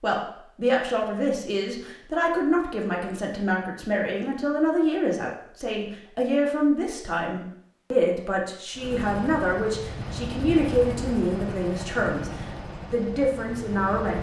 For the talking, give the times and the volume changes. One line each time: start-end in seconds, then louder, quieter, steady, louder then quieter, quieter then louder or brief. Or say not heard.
0.0-14.1 steady.